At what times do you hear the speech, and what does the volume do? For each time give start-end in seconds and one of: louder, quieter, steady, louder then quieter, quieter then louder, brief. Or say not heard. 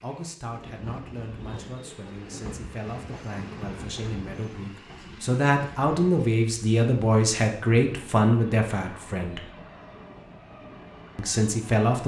0.0-9.4 louder
11.2-12.0 brief.